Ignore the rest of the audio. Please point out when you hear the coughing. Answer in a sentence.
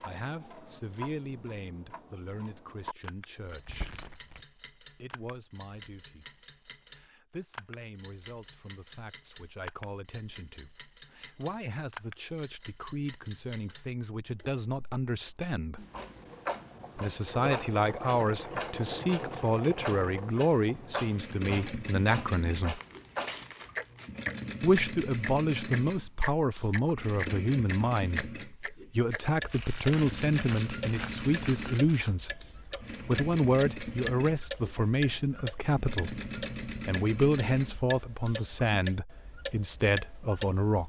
You can't hear the coughing here.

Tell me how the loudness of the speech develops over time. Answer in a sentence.
The volume of the speech goes up.